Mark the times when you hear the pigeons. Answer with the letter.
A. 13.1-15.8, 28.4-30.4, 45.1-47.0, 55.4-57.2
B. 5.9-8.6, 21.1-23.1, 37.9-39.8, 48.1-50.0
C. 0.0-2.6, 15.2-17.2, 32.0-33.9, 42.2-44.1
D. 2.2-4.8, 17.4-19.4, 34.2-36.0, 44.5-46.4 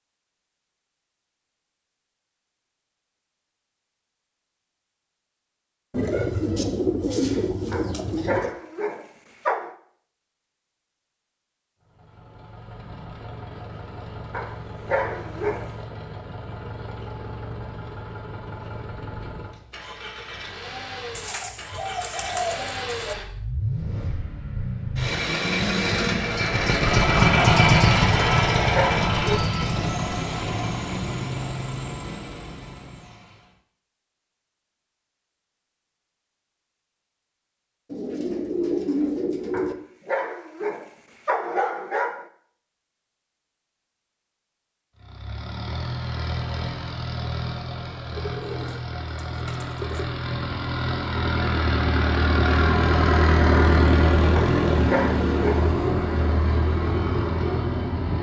B.